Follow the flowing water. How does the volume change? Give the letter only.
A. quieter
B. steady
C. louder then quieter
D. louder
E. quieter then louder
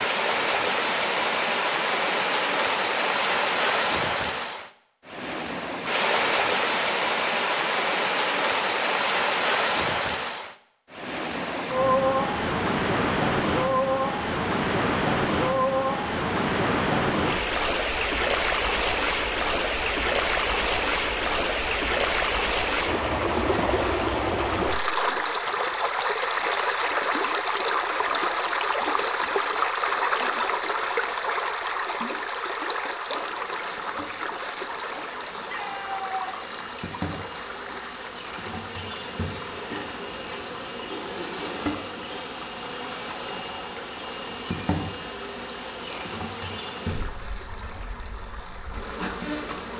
A.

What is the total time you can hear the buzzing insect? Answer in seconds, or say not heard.
17 s.